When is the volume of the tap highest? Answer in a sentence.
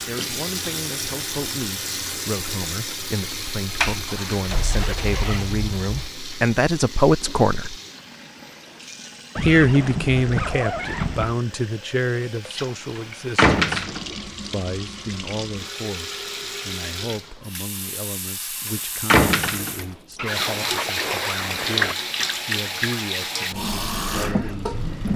The loudest moment of the tap is at 22 seconds.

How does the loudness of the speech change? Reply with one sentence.
The loudness of the speech goes up, then down.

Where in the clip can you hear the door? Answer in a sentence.
You can hear the door from 3.8 to 6.0 s, from 12.9 to 14.2 s and from 18.6 to 19.9 s.